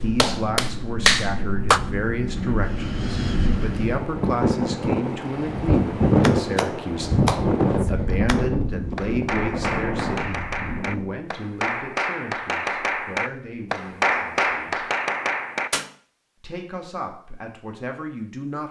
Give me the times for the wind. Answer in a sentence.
The wind can be heard from 0.0 to 11.2 s.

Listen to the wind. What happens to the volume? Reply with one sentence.
The volume of the wind goes up, then down.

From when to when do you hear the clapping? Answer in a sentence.
You can hear the clapping from 0.0 to 1.8 s and from 6.2 to 15.9 s.